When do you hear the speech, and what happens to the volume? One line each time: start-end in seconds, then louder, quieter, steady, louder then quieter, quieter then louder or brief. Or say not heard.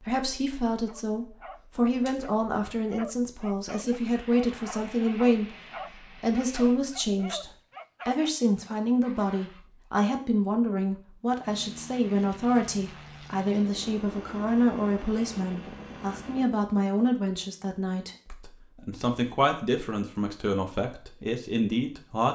0.0-22.3 steady.